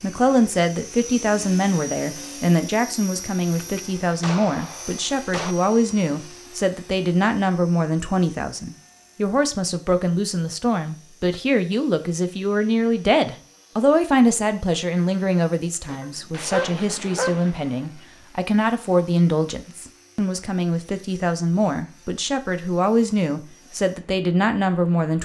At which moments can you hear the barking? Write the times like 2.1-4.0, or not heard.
16.0-17.4.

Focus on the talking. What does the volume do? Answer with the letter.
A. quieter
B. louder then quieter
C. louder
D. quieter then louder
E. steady
E.